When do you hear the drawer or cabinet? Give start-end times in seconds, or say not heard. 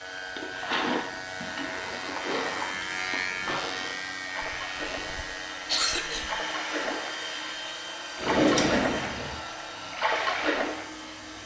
8.2-9.3.